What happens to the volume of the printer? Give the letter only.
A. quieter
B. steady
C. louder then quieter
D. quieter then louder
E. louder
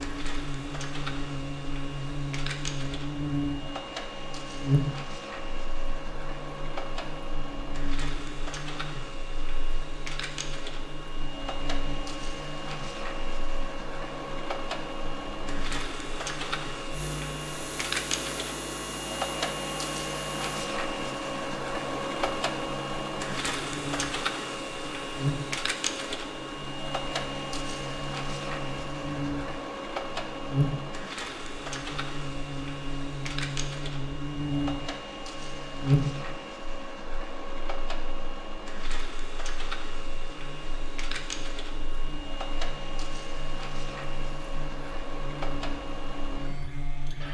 C.